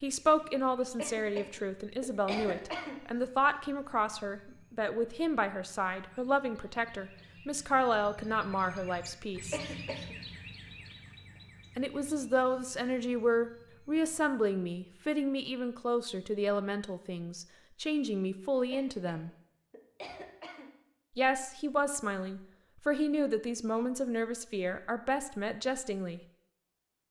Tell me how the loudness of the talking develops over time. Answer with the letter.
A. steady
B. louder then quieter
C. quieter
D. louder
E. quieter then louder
A.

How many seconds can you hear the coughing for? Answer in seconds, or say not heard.
5 s.